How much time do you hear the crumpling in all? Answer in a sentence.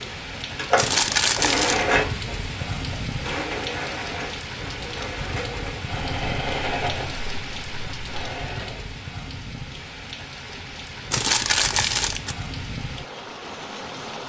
The crumpling can be heard for 2 seconds in total.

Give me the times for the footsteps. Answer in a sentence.
You can't hear the footsteps here.